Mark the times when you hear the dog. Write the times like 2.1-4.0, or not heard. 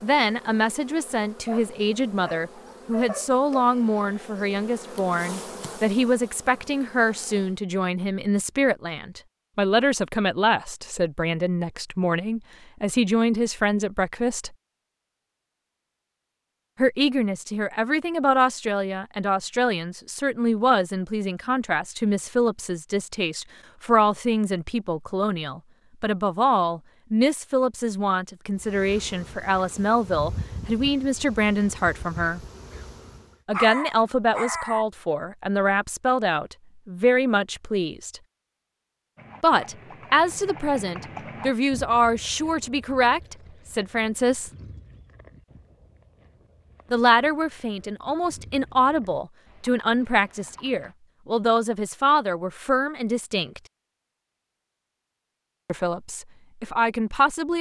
1.4-3.6, 33.5-34.9.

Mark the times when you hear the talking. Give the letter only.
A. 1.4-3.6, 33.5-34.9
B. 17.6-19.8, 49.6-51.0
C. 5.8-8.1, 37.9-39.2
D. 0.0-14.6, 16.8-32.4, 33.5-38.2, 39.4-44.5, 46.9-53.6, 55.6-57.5
D.